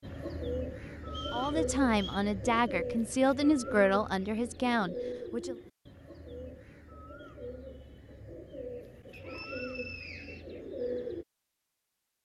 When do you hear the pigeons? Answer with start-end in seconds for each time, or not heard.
0.0-11.2.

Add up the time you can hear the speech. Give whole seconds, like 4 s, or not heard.
4 s.